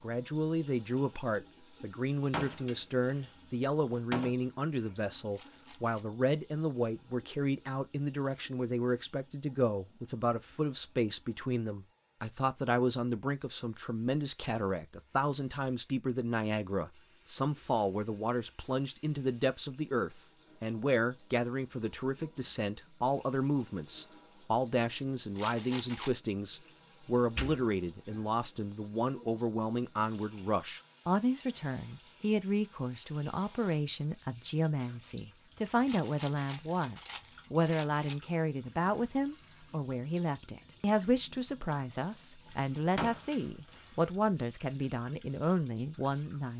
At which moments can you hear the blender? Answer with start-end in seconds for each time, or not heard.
not heard.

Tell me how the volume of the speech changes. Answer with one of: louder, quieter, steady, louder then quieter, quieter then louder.
steady.